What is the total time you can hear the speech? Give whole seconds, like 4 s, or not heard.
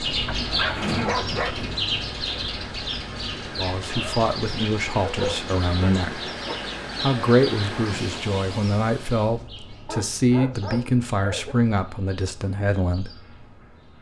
9 s.